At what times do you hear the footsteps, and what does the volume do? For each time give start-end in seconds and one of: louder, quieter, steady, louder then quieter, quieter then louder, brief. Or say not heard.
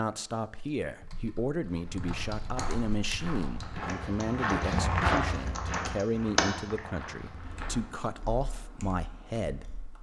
1.6-7.9 louder then quieter.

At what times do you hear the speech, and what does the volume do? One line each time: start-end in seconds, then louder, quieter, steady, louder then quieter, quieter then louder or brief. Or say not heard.
0.0-9.9 steady.